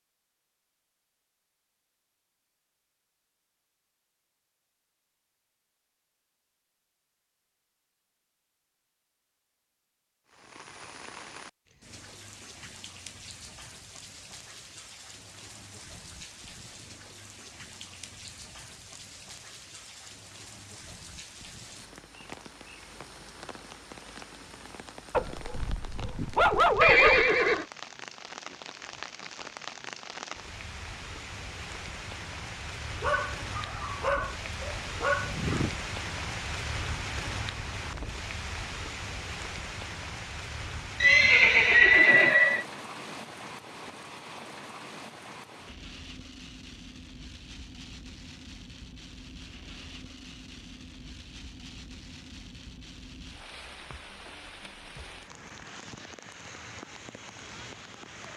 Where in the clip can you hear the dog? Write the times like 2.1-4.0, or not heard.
25.1-27.2, 33.0-35.7.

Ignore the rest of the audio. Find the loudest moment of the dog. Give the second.
27 s.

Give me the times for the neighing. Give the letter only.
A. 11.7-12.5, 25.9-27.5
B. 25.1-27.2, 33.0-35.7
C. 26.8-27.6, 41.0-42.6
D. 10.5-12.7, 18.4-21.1
C.